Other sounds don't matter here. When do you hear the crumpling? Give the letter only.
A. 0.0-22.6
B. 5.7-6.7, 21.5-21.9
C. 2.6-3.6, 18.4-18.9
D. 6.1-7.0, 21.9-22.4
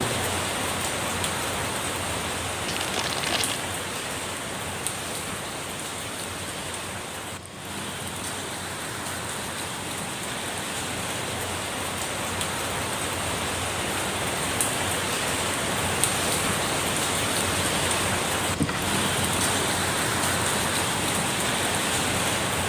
C.